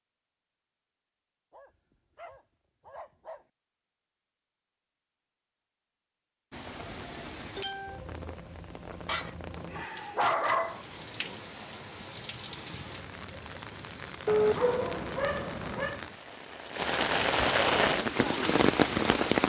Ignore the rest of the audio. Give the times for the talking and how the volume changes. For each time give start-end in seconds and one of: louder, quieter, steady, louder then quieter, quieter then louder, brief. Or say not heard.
not heard.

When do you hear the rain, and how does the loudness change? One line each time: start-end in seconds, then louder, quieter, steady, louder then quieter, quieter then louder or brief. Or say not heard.
6.5-19.4 louder.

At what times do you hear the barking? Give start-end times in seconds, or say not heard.
1.5-3.5, 9.1-10.8, 14.2-16.0.